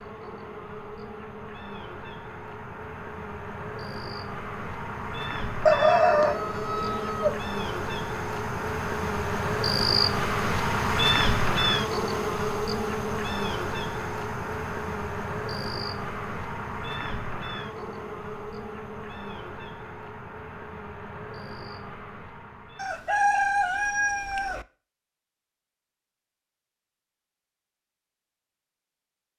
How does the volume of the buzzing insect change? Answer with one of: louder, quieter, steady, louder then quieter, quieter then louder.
louder then quieter.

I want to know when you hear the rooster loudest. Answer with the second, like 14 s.
6 s.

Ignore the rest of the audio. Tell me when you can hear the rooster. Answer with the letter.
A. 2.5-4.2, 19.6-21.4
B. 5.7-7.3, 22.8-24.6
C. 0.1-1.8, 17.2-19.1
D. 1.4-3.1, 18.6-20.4
B.